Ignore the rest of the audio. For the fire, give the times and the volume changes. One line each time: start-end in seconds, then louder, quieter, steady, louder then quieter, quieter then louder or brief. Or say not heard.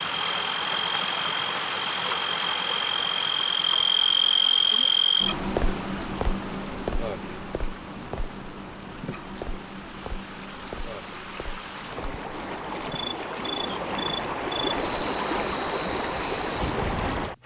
not heard.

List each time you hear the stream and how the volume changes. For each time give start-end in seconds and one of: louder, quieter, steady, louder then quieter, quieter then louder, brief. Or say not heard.
0.0-17.4 quieter then louder.